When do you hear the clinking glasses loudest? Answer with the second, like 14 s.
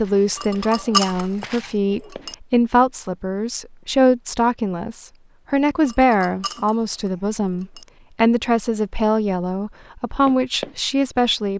1 s.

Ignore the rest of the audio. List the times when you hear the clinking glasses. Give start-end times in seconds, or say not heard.
0.3-2.4, 5.8-7.8.